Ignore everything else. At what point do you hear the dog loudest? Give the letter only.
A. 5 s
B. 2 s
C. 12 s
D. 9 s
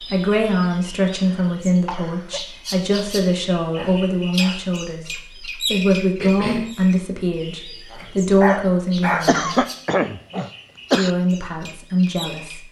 D.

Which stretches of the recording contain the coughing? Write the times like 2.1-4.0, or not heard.
1.1-2.4, 6.2-6.8, 9.1-11.1.